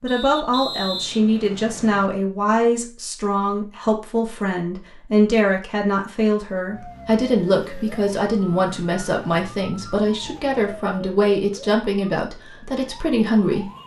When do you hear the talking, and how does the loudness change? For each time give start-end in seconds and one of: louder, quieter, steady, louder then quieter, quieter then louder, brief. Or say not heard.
0.0-13.7 steady.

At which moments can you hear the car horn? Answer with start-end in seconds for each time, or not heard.
not heard.